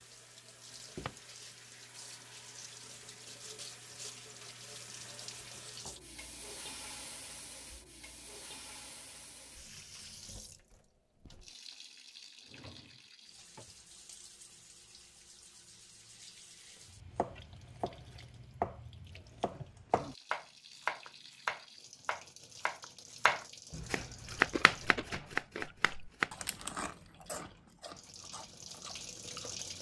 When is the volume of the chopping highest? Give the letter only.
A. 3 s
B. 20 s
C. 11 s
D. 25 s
D.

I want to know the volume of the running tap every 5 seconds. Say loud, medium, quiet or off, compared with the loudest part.
loud, loud, medium, medium, medium, loud.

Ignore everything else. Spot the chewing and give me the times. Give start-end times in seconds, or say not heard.
24.2-29.7.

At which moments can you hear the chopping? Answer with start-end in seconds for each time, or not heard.
16.9-26.3.